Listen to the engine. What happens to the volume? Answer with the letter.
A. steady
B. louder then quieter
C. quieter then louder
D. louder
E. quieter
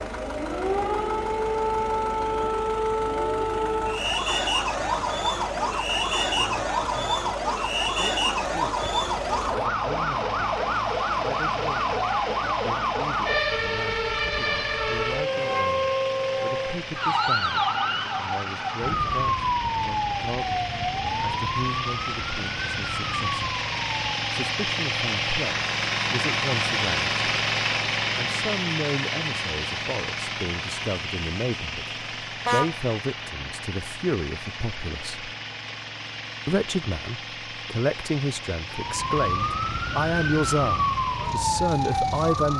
B.